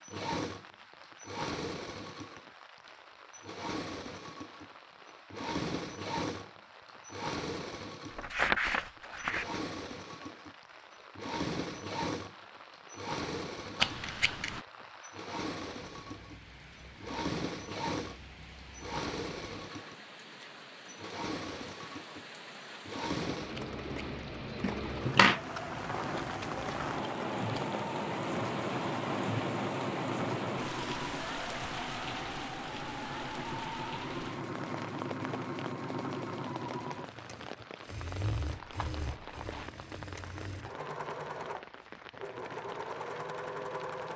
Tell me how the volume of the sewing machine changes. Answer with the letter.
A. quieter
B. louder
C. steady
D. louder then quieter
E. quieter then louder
C.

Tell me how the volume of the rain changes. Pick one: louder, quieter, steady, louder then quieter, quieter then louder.
louder then quieter.